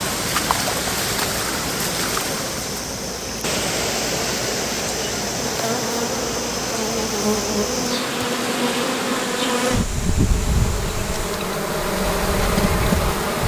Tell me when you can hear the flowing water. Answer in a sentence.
The flowing water can be heard from 0.0 to 11.4 s.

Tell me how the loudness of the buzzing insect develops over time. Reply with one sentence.
The volume of the buzzing insect goes up.